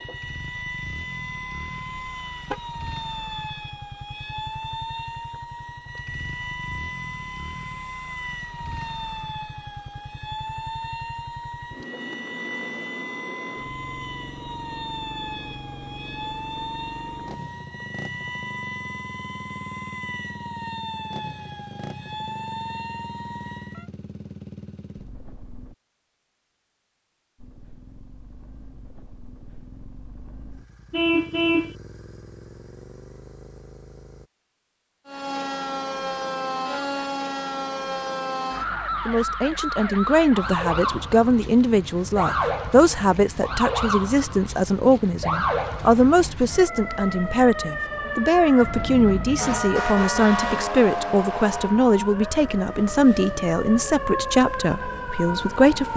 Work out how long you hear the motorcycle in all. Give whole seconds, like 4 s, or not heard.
33 s.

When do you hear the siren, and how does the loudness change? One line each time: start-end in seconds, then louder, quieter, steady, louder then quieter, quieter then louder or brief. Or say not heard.
0.0-23.9 steady
35.0-55.9 steady.